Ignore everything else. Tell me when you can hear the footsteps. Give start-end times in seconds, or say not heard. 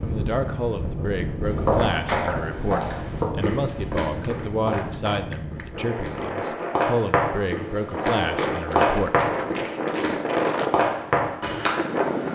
1.5-11.7.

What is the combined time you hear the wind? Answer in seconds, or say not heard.
12 s.